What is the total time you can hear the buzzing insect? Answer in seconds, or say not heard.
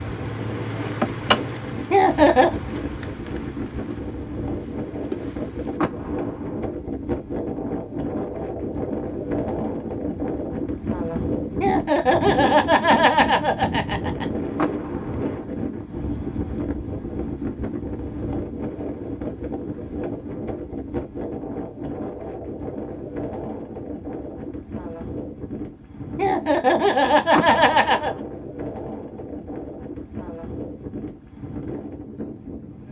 6 s.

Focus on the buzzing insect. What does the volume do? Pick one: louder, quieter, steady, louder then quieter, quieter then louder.
quieter then louder.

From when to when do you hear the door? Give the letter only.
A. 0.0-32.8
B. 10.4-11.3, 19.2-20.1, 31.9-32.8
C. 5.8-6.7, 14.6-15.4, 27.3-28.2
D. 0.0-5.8
C.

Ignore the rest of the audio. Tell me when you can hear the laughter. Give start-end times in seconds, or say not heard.
1.9-2.6, 11.6-14.2, 26.1-28.1.